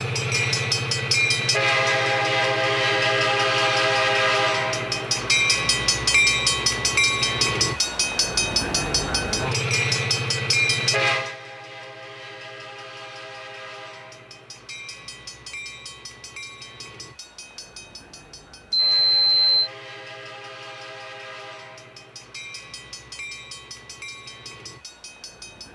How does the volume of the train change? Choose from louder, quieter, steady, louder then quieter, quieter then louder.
quieter.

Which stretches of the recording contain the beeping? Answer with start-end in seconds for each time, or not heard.
18.7-19.7.